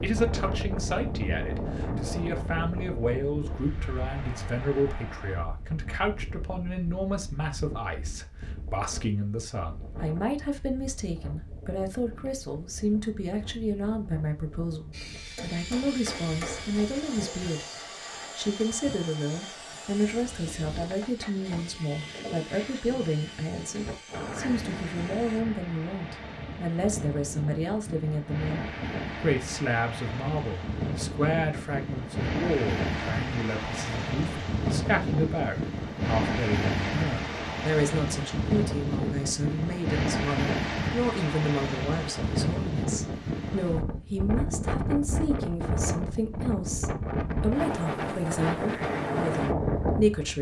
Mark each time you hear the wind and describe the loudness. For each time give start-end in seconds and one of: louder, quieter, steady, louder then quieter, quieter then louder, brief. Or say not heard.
0.0-50.3 quieter then louder.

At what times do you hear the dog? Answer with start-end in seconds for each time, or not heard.
not heard.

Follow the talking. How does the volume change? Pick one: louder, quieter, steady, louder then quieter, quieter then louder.
steady.